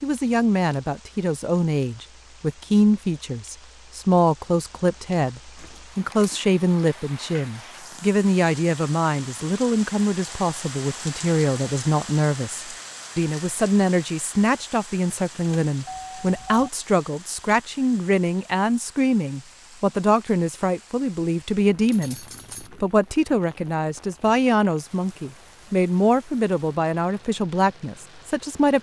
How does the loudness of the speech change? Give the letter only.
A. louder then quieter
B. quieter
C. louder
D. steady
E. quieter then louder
D.